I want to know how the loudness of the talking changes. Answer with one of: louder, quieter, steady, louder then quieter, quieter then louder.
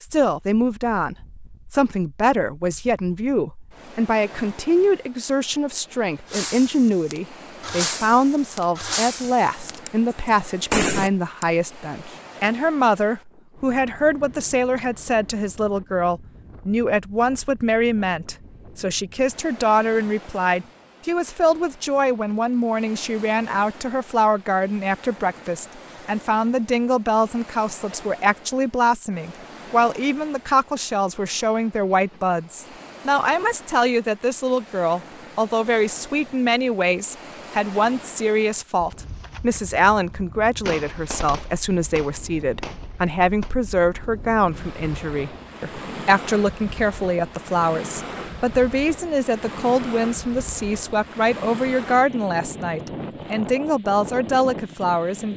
steady.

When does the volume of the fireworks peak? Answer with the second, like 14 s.
11 s.